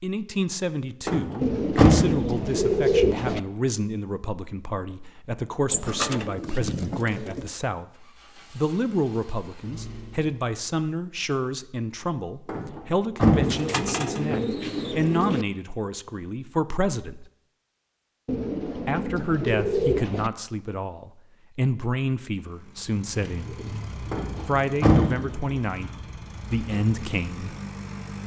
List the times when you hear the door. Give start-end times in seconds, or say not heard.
1.1-2.3, 12.4-13.7, 24.1-25.6.